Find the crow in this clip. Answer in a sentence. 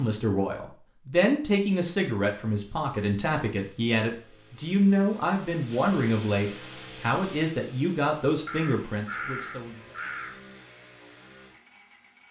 The crow can be heard from 8.4 to 10.4 s.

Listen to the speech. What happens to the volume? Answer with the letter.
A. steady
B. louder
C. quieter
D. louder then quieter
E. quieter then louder
A.